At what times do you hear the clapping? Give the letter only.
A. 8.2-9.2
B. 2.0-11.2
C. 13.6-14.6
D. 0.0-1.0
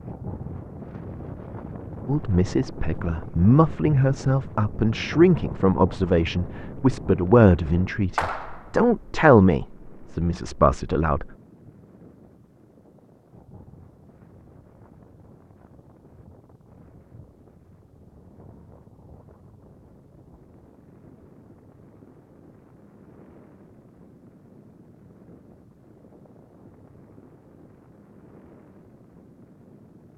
A.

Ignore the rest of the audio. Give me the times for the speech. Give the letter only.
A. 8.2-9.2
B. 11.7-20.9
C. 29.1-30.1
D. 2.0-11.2
D.